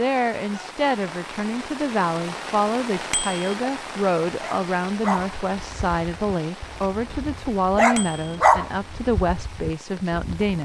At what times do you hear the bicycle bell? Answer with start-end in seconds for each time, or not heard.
3.1-3.5, 8.0-8.4.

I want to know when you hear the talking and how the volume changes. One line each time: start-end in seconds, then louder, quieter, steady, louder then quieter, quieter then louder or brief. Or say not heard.
0.0-10.6 steady.